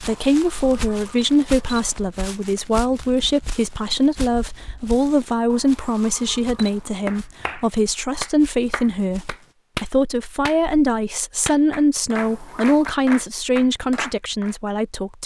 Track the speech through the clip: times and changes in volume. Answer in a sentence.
The speech can be heard from 0.0 to 15.2 s, at a steady volume.